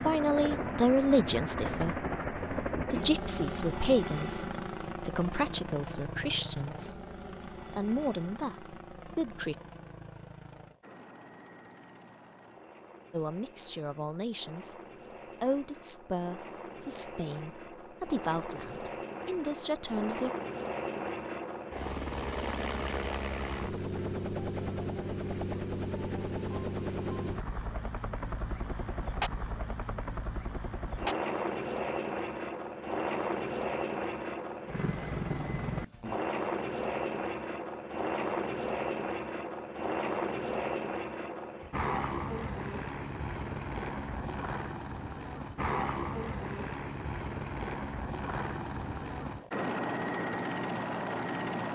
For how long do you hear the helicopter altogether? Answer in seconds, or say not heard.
52 s.